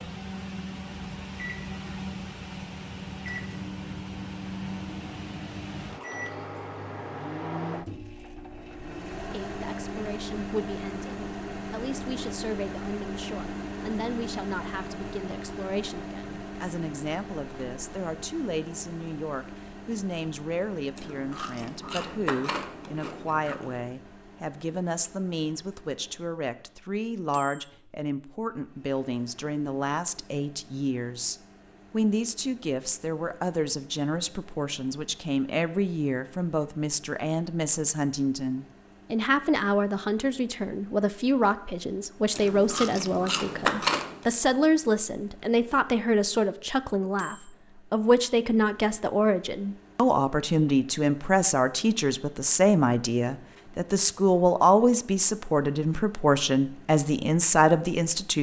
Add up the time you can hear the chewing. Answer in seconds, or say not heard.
5 s.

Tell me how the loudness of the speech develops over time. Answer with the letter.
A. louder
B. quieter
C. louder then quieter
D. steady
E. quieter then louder
A.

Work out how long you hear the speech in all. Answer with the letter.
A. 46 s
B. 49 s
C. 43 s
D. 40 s
B.